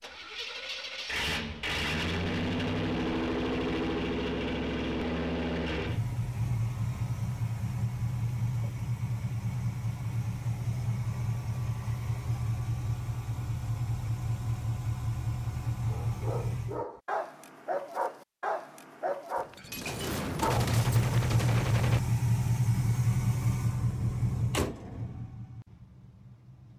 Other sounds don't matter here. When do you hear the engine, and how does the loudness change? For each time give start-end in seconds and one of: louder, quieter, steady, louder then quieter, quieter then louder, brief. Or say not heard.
0.0-16.9 steady
20.4-26.7 quieter.